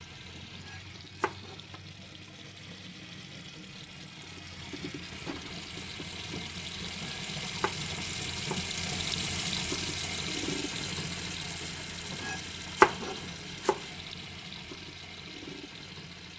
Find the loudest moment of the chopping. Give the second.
13 s.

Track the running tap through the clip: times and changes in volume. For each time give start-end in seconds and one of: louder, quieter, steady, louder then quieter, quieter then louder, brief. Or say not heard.
0.0-16.3 louder then quieter.